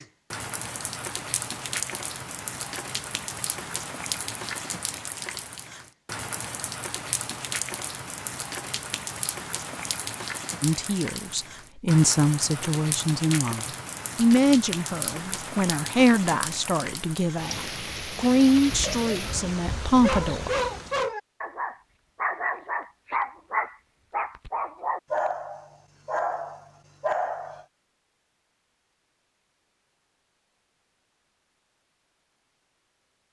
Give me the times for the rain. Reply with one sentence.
The rain can be heard from 0.0 to 21.1 s.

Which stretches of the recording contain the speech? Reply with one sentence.
You can hear the speech from 10.6 to 20.5 s.